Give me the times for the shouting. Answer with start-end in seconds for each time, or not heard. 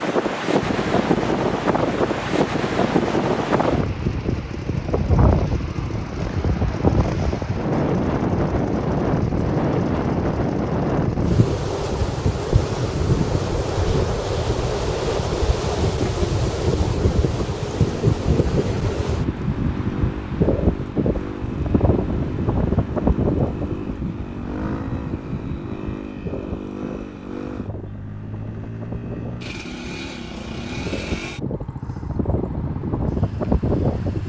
not heard.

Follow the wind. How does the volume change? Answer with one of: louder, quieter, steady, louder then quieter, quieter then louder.
quieter.